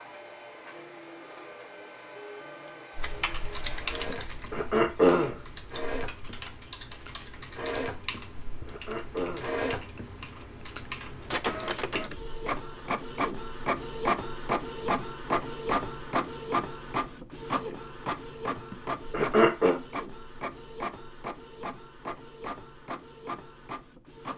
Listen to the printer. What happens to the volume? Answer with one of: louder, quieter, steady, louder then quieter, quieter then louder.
louder then quieter.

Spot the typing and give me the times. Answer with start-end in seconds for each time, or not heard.
3.0-12.1.